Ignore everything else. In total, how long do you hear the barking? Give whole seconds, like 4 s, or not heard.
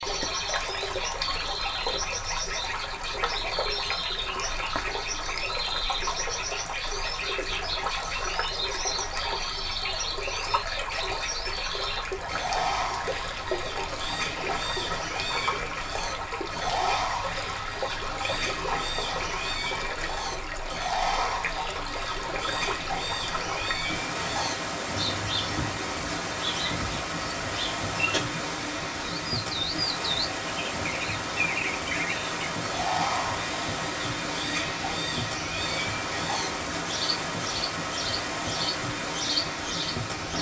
not heard.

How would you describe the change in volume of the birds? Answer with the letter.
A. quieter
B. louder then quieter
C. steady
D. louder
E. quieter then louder
C.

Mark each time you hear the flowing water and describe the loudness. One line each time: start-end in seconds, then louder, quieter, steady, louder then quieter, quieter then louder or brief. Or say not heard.
0.0-40.3 steady.